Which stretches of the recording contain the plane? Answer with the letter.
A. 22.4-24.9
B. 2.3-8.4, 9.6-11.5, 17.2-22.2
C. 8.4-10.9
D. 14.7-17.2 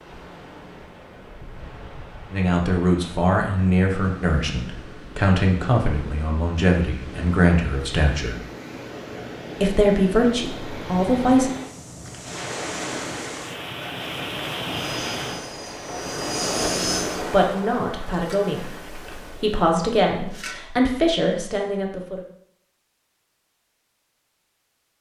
D.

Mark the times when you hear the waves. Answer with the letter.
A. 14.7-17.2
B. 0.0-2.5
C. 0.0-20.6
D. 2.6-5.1
C.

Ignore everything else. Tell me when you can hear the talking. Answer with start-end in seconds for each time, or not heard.
2.3-8.4, 9.6-11.5, 17.2-22.2.